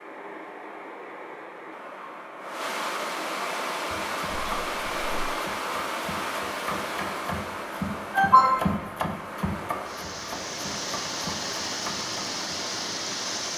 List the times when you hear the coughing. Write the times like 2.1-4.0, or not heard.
4.2-5.2, 8.1-8.8.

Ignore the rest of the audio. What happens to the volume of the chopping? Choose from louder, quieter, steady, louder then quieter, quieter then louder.
louder then quieter.